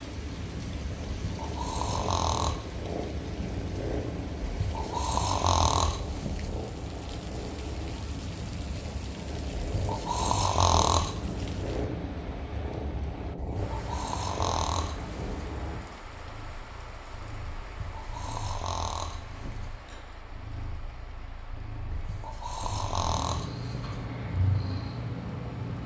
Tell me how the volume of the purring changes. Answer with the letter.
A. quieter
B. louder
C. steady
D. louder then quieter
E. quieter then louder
E.